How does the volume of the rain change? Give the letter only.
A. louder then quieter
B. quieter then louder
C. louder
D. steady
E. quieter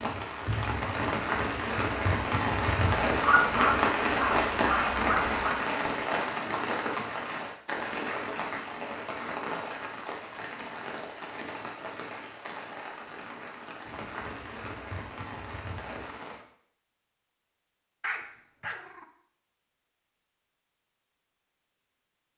E.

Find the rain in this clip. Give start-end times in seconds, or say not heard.
0.0-16.4.